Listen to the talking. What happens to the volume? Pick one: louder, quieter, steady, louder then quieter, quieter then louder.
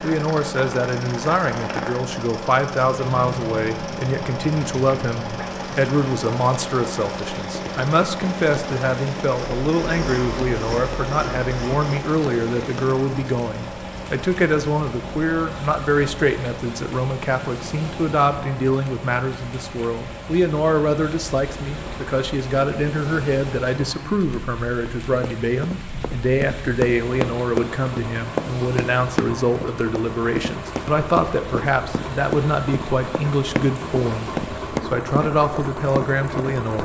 steady.